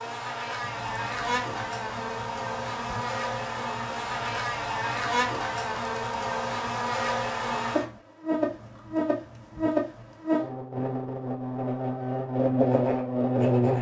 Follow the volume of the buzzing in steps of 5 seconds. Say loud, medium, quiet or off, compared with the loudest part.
medium, loud, loud.